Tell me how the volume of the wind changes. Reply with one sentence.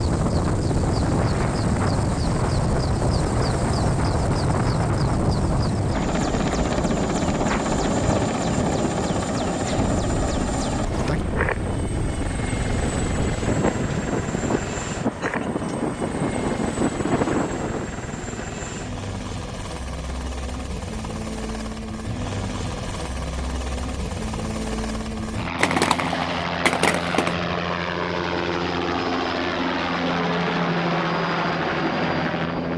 The volume of the wind stays about the same.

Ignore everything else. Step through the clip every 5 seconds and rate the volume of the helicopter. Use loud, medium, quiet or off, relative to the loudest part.
loud, loud, medium, medium, medium, loud, loud.